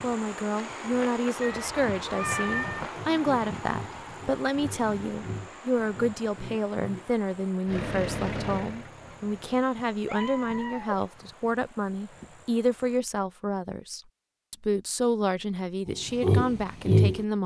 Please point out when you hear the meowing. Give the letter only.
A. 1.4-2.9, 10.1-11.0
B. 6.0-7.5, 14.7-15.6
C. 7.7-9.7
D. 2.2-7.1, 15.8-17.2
A.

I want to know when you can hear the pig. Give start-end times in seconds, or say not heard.
2.2-7.1, 15.8-17.2.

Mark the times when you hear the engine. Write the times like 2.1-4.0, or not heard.
7.7-9.7.